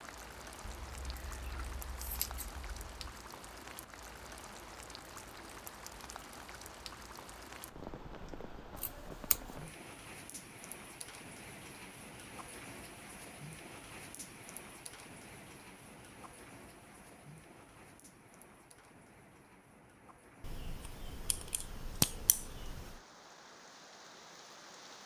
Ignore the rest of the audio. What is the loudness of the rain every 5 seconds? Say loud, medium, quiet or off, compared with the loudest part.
loud, loud, loud, medium, medium.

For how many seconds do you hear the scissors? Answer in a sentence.
You can hear the scissors for 6 seconds altogether.